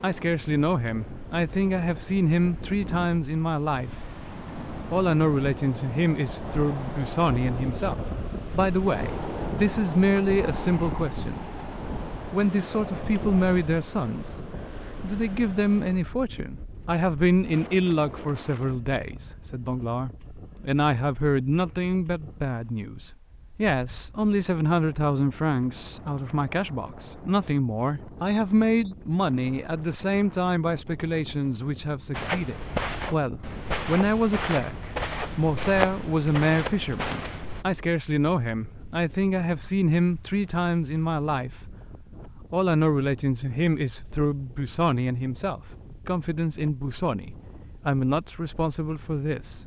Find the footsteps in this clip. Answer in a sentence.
You can hear the footsteps from 32.1 to 37.6 s.